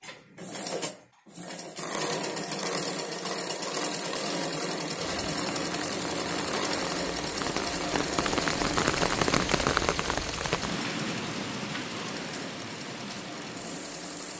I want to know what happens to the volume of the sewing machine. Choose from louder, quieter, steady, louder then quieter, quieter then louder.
quieter.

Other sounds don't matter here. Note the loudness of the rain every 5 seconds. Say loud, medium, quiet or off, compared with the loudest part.
off, loud, medium.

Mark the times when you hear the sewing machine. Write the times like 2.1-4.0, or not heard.
0.0-14.3.